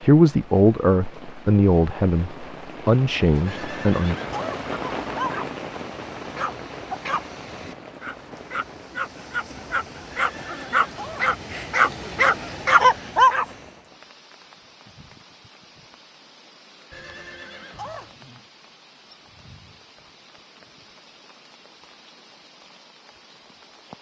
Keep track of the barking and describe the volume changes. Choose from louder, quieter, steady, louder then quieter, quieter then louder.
louder.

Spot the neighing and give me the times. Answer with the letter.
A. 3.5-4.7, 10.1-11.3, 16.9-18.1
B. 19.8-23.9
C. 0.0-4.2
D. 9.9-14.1
A.